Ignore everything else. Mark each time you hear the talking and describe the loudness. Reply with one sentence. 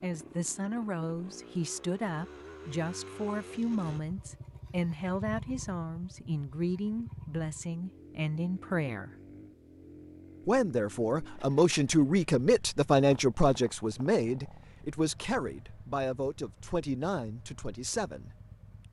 The talking can be heard from 0.0 to 9.1 s, at a steady volume; and from 10.4 to 18.3 s, getting quieter.